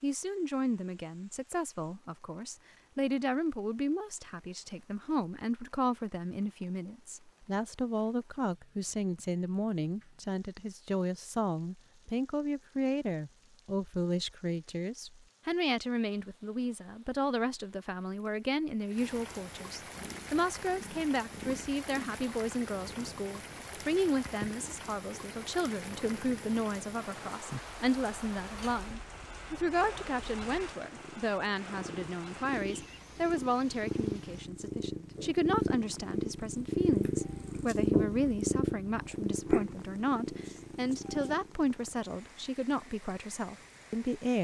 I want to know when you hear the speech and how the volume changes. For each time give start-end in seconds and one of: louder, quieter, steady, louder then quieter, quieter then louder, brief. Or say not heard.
0.0-44.4 steady.